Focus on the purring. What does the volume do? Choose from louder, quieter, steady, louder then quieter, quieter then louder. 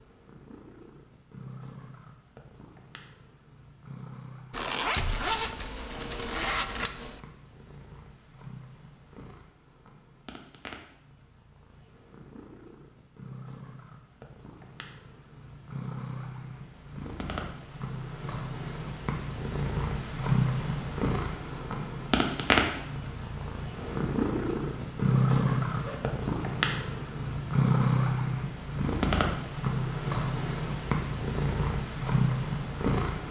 louder.